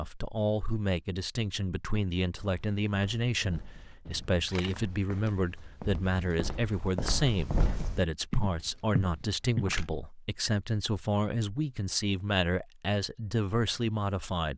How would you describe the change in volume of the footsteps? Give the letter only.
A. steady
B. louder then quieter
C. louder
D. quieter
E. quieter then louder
C.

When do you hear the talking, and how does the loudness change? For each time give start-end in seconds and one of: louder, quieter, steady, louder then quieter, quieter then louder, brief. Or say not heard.
0.0-14.5 steady.